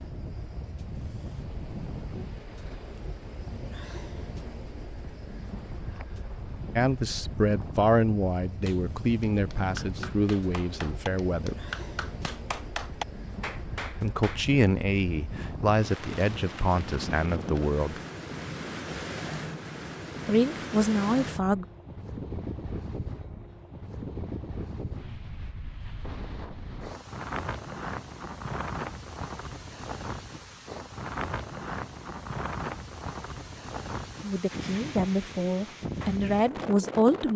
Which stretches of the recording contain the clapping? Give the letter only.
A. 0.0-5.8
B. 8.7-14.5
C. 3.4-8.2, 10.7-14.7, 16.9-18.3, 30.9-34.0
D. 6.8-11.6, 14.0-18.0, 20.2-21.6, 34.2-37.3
B.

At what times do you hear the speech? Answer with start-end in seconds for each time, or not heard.
6.8-11.6, 14.0-18.0, 20.2-21.6, 34.2-37.3.